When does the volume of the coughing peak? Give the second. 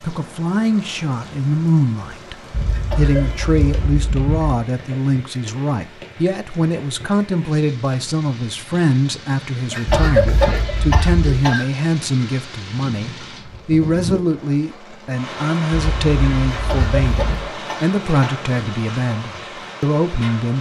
10 s.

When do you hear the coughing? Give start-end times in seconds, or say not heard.
2.7-3.5, 9.7-11.7, 16.5-18.3.